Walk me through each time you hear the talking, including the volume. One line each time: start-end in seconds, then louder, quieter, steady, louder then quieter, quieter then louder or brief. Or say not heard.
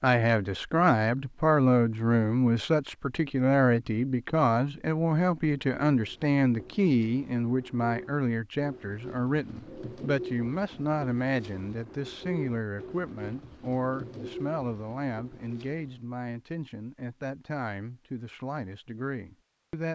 0.0-19.9 quieter.